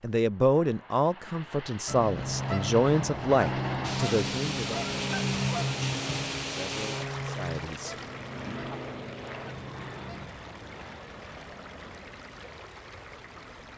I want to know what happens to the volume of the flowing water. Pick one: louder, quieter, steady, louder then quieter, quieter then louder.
quieter.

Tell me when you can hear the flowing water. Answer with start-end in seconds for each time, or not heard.
3.8-13.7.